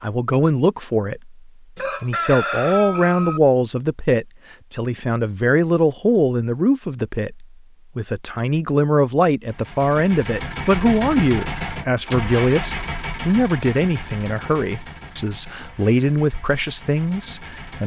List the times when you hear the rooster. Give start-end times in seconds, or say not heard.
1.8-3.4.